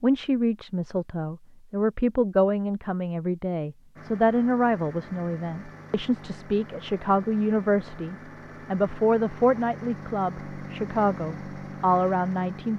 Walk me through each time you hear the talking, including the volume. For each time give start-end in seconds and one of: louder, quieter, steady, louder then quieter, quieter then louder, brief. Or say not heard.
0.0-12.7 steady.